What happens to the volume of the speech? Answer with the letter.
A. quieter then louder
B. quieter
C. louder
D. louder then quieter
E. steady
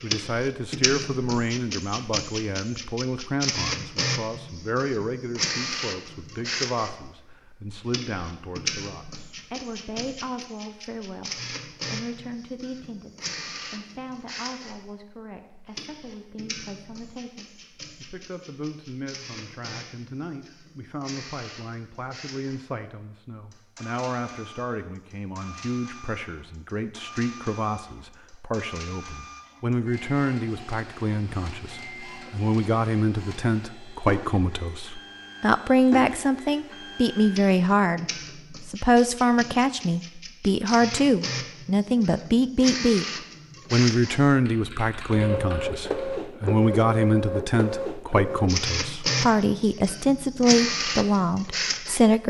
A.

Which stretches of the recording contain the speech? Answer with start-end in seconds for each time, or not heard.
0.0-43.0, 43.7-52.2.